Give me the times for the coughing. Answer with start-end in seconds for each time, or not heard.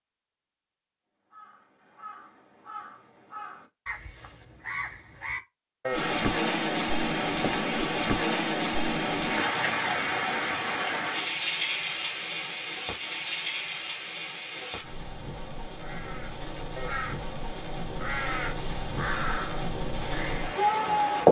not heard.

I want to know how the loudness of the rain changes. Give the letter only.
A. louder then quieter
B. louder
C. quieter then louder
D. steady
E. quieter
C.